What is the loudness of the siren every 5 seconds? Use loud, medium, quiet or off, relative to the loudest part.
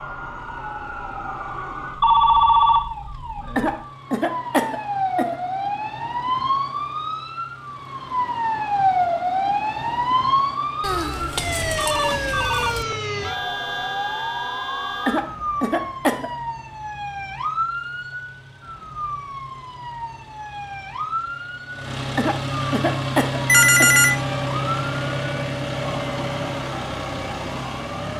medium, loud, loud, medium, medium, quiet.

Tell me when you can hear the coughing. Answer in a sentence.
The coughing can be heard from 3.5 to 5.3 s, from 15.1 to 16.3 s and from 22.1 to 24.0 s.